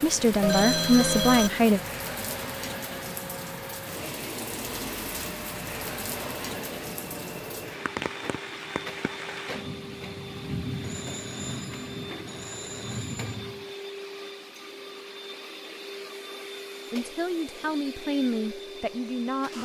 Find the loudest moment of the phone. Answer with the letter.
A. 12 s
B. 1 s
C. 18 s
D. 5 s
B.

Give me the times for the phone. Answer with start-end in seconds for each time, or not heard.
0.4-1.5, 10.8-13.2.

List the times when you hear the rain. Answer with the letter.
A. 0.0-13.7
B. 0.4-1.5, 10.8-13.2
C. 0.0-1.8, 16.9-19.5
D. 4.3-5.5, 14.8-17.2
A.